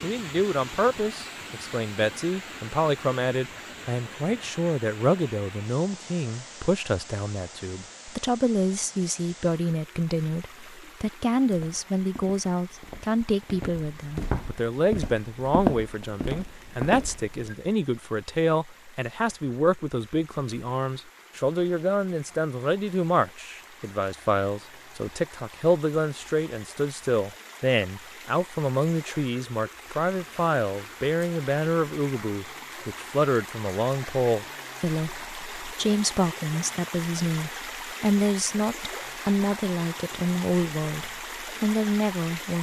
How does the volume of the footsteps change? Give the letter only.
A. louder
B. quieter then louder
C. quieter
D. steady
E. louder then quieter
E.